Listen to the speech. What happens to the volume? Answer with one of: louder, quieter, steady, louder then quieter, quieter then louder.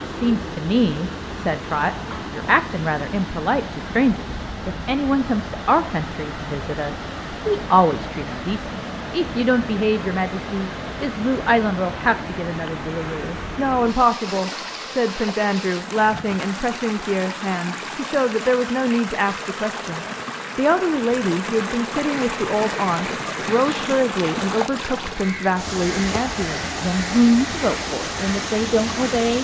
steady.